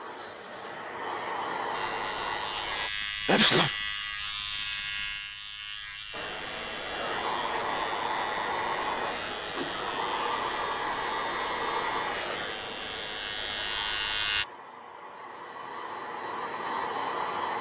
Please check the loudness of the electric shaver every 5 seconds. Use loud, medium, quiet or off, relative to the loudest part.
loud, medium, loud, off.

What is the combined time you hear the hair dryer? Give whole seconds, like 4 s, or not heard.
14 s.